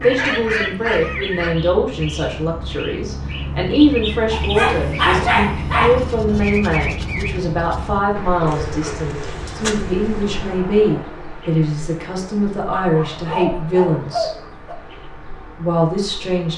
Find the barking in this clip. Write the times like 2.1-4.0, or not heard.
0.0-1.6, 4.3-6.1, 8.4-10.4, 12.8-14.8.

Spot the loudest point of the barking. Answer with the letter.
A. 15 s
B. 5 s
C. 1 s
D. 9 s
B.